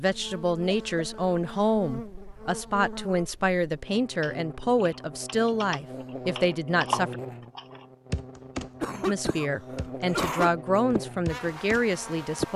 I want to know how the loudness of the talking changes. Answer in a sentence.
The volume of the talking stays about the same.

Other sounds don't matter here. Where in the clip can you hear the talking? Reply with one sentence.
You can hear the talking from 0.0 to 7.2 s and from 9.1 to 12.5 s.